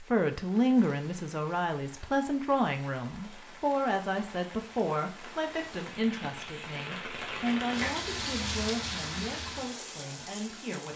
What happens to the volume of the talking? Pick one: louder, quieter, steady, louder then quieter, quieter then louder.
quieter.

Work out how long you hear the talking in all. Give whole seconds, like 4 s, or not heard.
11 s.